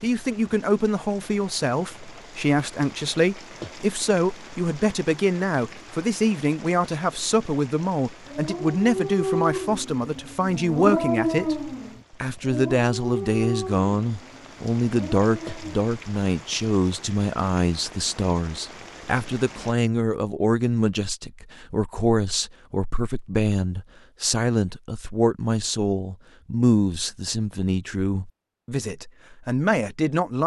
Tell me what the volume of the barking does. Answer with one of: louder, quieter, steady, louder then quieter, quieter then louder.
quieter.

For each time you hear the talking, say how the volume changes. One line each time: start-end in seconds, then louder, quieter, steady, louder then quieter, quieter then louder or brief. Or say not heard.
0.0-30.4 steady.